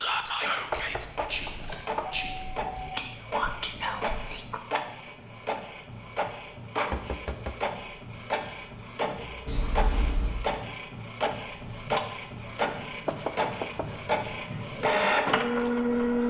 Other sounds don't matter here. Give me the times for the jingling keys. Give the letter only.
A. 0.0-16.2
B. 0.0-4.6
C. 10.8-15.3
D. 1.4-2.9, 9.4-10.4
D.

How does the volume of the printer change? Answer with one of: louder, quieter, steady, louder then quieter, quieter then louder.
louder.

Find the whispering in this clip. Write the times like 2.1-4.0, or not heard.
0.0-4.6.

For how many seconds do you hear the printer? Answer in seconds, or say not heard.
16 s.